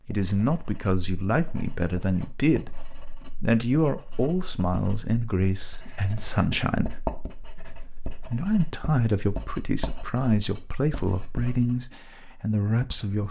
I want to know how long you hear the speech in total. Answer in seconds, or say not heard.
12 s.